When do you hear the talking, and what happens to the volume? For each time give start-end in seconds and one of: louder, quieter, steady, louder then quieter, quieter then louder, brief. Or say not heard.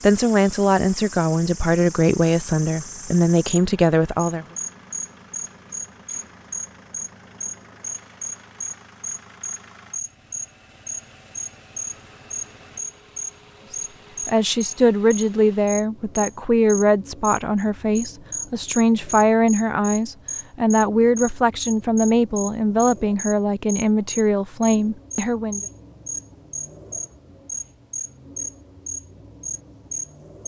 0.0-4.5 steady
14.2-25.6 steady.